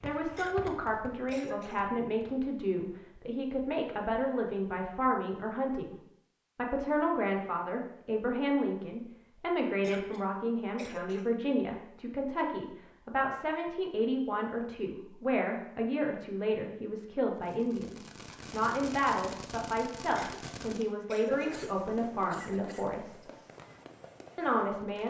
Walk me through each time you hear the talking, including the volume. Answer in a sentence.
The talking can be heard from 0.0 to 6.0 s, at a steady volume; from 6.5 to 23.2 s, at a steady volume; and briefly from 24.4 to 25.0 s.